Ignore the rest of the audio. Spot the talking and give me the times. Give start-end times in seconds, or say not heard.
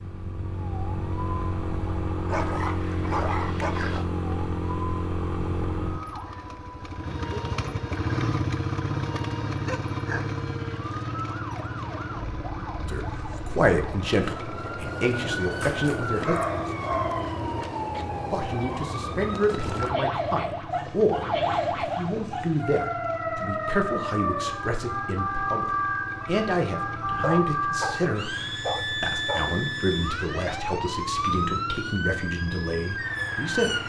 12.8-16.4, 18.3-33.8.